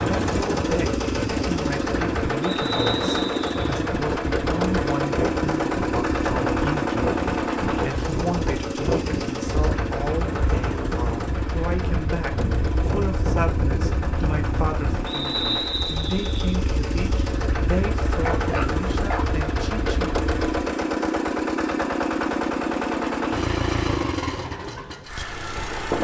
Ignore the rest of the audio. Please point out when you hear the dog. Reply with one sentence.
You can hear the dog from 18.2 to 19.4 s.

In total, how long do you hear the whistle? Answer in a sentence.
You can hear the whistle for 3 seconds altogether.